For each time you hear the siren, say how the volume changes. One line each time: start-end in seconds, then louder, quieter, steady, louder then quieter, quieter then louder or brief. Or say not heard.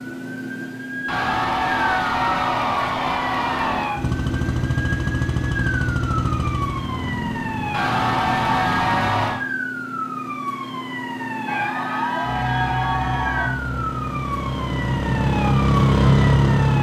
0.0-16.7 steady.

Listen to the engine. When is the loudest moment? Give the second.
16 s.